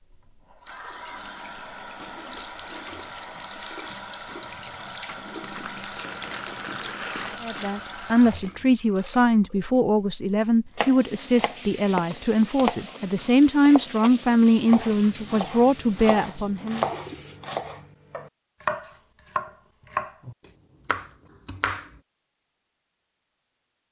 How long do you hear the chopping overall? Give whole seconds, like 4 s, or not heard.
11 s.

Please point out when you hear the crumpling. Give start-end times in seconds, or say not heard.
5.0-7.6.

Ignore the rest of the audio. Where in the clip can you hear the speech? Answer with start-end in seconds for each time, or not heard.
7.4-16.9.